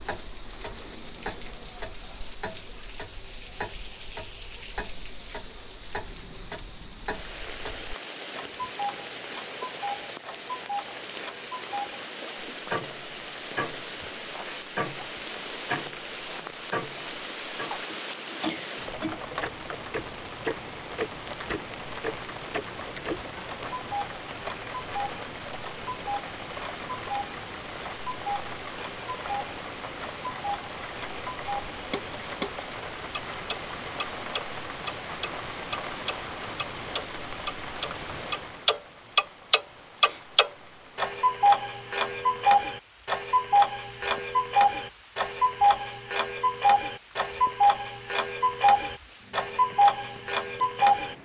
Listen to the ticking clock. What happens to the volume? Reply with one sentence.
The loudness of the ticking clock goes up.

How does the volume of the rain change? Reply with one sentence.
The loudness of the rain goes down.